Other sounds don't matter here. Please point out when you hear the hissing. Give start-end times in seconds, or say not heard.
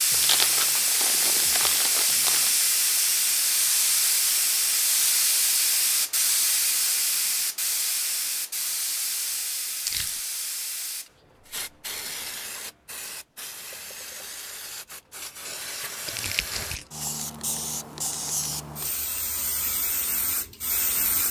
0.0-21.2.